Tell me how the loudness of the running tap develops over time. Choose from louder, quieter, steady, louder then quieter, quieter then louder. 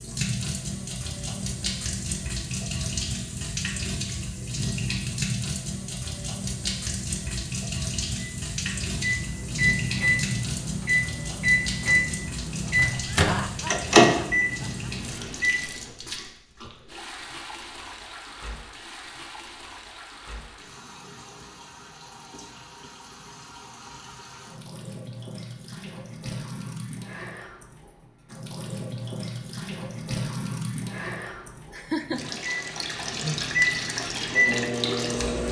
quieter then louder.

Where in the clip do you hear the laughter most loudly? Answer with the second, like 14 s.
32 s.